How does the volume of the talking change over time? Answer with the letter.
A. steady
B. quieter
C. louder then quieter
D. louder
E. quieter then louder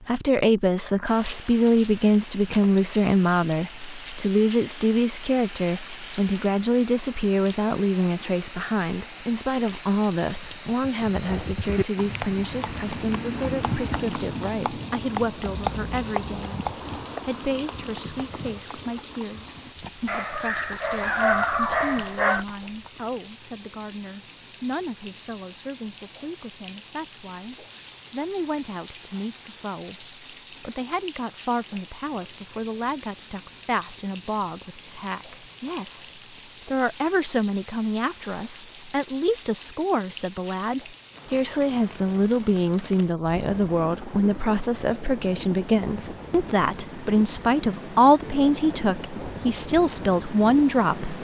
E.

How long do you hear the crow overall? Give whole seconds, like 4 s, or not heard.
not heard.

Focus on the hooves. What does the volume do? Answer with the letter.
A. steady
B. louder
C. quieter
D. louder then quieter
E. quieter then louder
C.